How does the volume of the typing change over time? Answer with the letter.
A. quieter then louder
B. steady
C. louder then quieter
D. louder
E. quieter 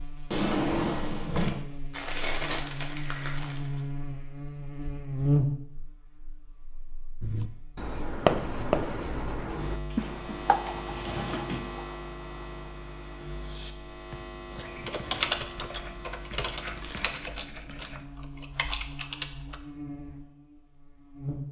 A.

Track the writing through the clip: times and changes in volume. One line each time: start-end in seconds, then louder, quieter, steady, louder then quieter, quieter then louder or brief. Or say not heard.
7.2-18.1 quieter.